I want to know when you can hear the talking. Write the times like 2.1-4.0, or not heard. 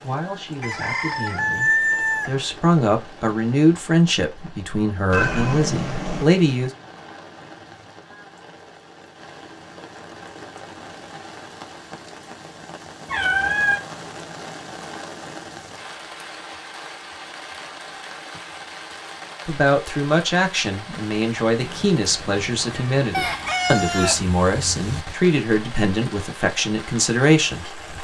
0.0-6.7, 19.4-27.9.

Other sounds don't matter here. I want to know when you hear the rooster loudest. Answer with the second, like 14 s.
2 s.